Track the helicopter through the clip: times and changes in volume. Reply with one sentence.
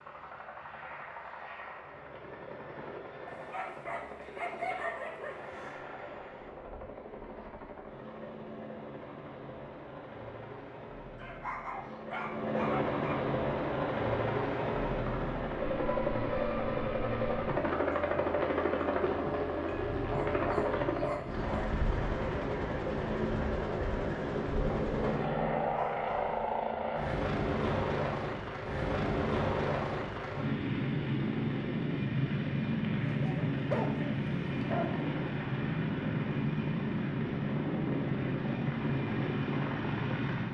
The helicopter can be heard from 0.0 to 40.4 s, getting louder.